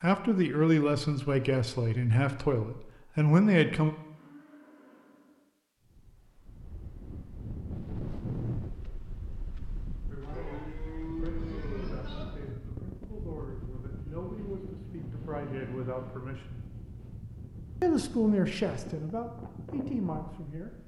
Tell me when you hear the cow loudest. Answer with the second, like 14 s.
11 s.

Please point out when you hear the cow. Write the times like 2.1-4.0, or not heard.
4.1-5.5, 10.2-12.2, 13.9-16.3.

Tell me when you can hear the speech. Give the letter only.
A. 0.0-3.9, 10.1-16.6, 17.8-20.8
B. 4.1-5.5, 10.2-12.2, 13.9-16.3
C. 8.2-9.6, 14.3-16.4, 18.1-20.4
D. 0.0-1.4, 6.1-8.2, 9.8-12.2
A.